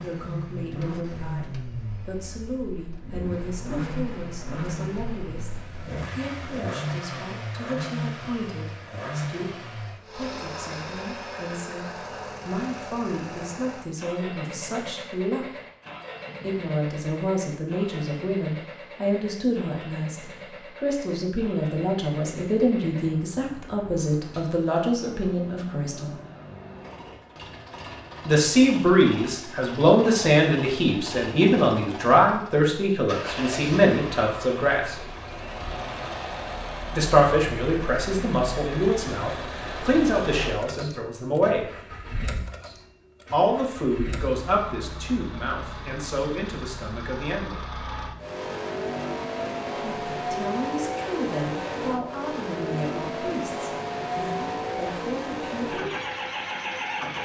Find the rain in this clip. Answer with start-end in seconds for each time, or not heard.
not heard.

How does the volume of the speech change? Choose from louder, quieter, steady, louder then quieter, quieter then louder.
louder then quieter.